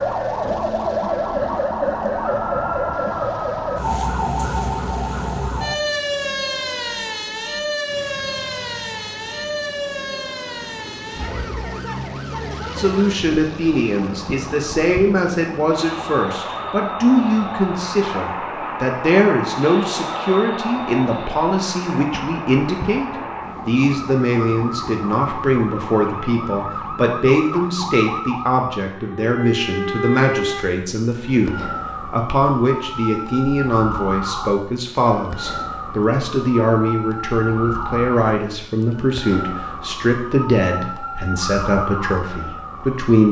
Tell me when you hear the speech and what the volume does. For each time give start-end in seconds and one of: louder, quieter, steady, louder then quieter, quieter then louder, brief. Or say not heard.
12.8-43.2 steady.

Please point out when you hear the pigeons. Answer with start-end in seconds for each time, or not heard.
not heard.